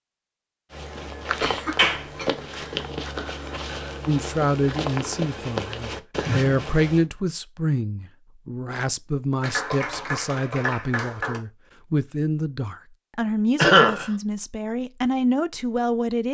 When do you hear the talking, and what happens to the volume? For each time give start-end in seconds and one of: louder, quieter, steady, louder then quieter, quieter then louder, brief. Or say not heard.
4.0-16.3 steady.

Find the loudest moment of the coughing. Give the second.
14 s.